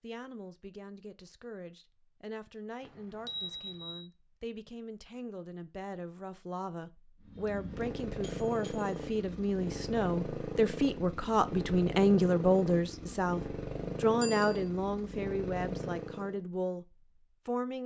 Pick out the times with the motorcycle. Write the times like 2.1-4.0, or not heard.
7.2-16.4.